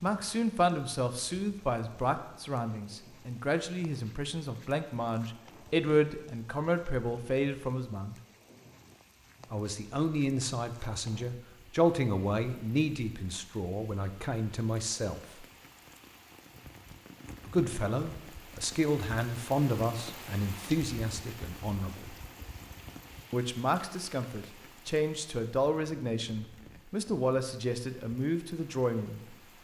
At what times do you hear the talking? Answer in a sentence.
The talking can be heard from 0.0 to 8.2 s, from 9.5 to 15.4 s, from 17.4 to 22.1 s and from 23.3 to 29.4 s.